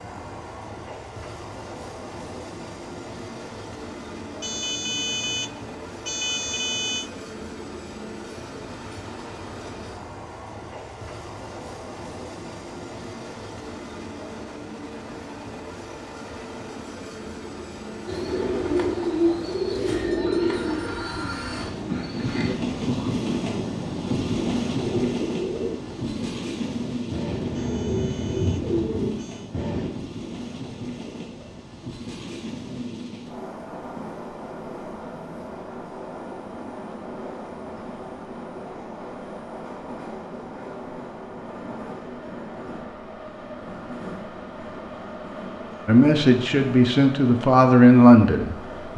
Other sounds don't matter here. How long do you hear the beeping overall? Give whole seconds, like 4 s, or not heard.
5 s.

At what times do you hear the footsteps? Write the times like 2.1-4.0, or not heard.
not heard.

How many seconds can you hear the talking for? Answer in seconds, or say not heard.
3 s.